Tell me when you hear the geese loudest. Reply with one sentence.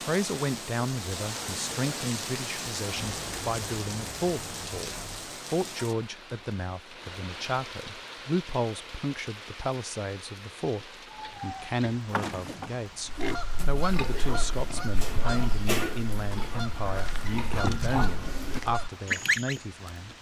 The loudest moment of the geese is at 19 seconds.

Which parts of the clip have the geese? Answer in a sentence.
The geese can be heard from 13.1 to 19.6 s.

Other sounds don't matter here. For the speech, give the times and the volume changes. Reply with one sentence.
You can hear the speech from 0.1 to 20.1 s, at a steady volume.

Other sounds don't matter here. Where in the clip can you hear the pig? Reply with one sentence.
You can hear the pig from 11.1 to 18.6 s.